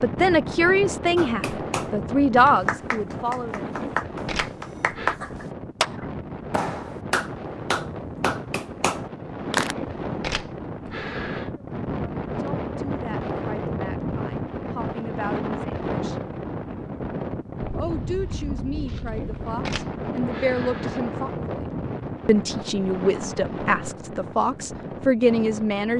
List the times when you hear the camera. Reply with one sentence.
The camera can be heard from 3.8 to 5.2 s, from 9.7 to 11.5 s and from 19.1 to 21.1 s.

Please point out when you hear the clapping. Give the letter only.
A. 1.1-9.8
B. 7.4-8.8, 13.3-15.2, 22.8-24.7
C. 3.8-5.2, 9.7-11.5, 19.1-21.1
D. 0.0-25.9
A.